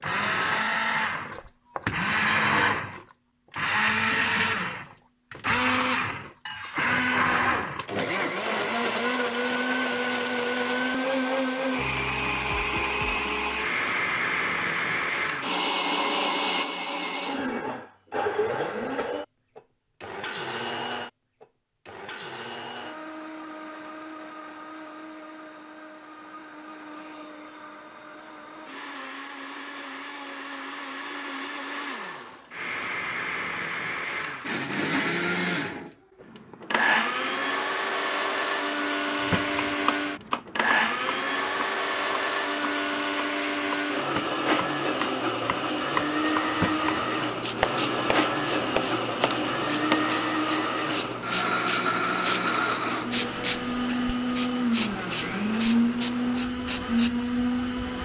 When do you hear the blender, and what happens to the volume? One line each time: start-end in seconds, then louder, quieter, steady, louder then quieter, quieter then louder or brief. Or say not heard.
0.0-58.0 quieter then louder.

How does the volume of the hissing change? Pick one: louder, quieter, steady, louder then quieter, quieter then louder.
steady.